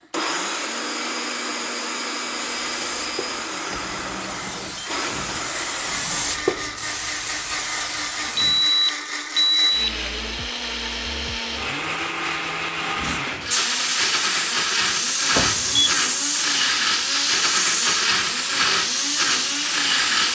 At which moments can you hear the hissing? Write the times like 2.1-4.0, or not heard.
2.5-8.8, 12.9-20.2.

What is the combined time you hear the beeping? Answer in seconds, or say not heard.
3 s.